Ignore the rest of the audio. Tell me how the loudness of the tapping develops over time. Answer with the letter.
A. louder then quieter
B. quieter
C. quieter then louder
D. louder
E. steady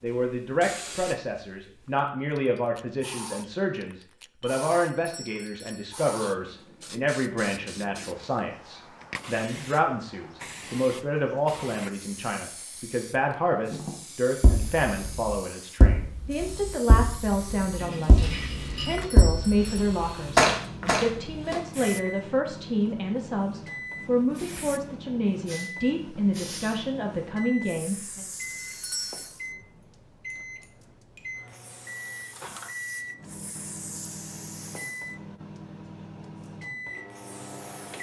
D.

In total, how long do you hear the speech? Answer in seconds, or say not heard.
28 s.